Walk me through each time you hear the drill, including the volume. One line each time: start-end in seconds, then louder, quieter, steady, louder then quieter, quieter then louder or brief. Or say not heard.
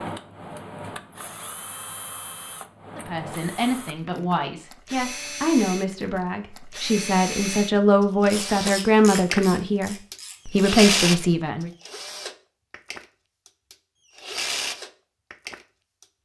0.0-16.2 louder then quieter.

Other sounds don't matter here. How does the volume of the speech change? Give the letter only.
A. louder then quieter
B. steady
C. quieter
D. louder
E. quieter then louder
D.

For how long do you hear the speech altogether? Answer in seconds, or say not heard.
9 s.